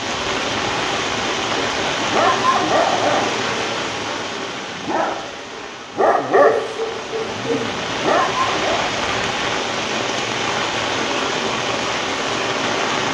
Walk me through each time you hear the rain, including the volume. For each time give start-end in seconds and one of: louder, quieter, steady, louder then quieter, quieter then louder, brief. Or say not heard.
0.0-13.0 quieter then louder.